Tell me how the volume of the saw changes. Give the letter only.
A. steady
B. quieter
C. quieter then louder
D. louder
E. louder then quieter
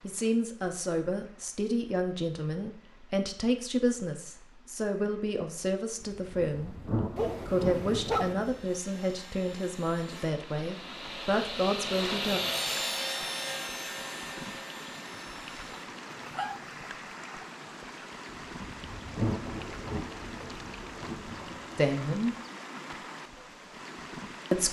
E.